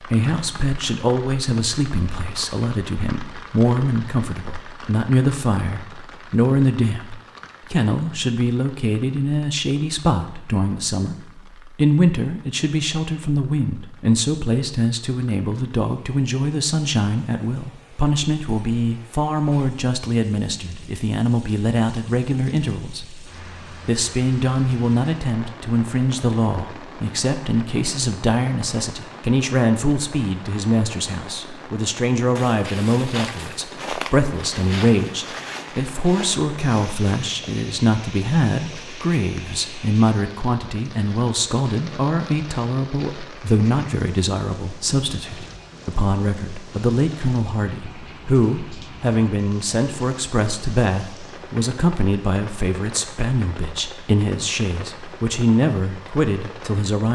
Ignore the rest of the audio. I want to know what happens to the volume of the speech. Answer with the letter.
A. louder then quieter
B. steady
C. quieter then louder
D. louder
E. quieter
B.